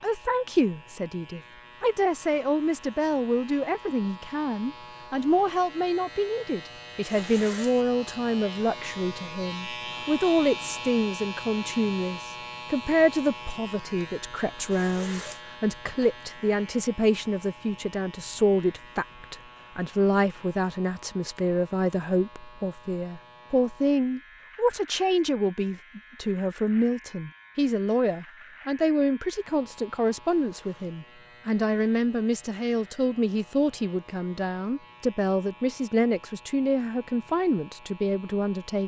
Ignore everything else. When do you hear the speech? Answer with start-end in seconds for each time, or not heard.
0.0-38.8.